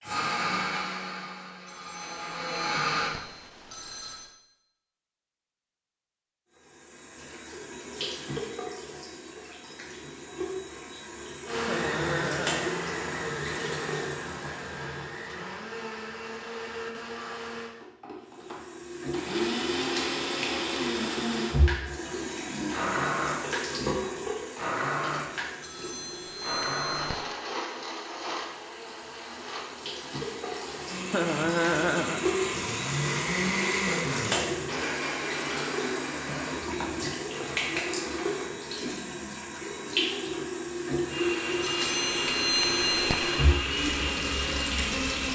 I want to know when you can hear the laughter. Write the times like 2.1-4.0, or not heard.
11.6-12.8, 31.1-32.2.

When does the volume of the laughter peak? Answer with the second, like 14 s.
32 s.